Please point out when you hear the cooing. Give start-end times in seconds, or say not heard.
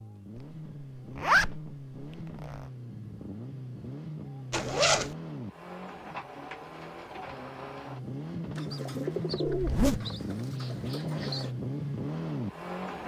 8.6-11.6.